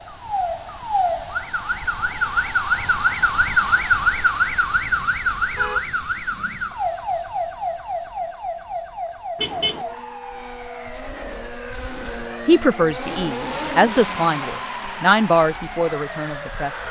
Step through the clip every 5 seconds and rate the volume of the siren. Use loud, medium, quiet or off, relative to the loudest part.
loud, medium, quiet, quiet.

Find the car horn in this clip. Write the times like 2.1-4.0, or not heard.
5.5-6.8, 9.3-9.8.